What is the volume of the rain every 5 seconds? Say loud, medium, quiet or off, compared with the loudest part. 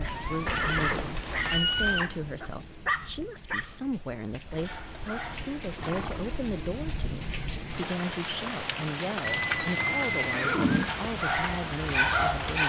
medium, loud, loud.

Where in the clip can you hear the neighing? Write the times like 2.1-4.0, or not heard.
0.5-2.1, 4.5-6.4, 9.2-10.9.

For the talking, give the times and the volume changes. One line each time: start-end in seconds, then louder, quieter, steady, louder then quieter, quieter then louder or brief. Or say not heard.
0.0-12.6 steady.